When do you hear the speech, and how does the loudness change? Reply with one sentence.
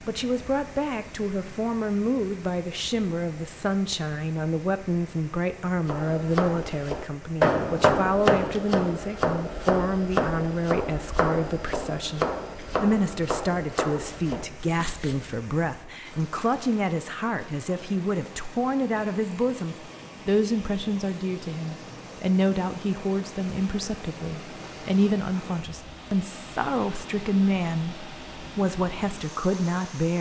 You can hear the speech from 0.0 to 30.1 s, at a steady volume.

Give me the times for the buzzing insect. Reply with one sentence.
You can't hear the buzzing insect here.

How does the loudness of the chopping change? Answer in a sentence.
The loudness of the chopping goes down.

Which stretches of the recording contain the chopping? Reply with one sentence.
The chopping can be heard from 5.8 to 15.3 s.